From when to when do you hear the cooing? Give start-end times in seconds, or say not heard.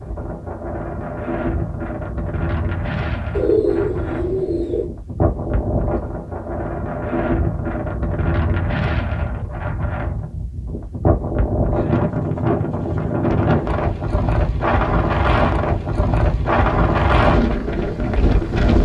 3.4-4.9.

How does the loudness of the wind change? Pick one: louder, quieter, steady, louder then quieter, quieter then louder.
louder.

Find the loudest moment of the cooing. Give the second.
4 s.